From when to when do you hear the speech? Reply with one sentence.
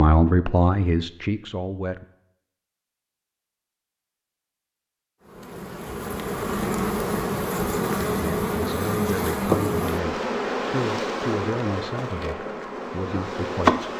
The speech can be heard from 0.0 to 2.0 s and from 8.1 to 13.8 s.